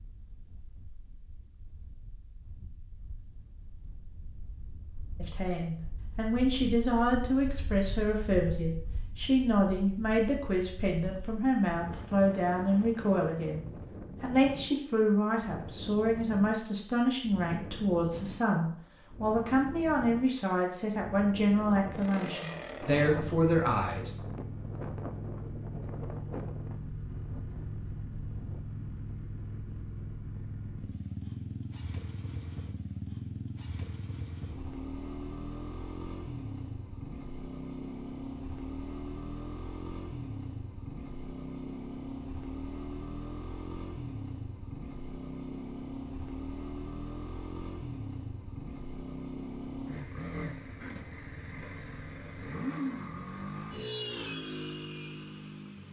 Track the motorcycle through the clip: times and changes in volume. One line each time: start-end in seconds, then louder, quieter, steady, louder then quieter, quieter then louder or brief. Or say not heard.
21.4-55.8 steady.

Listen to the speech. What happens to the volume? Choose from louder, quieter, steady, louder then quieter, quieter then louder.
steady.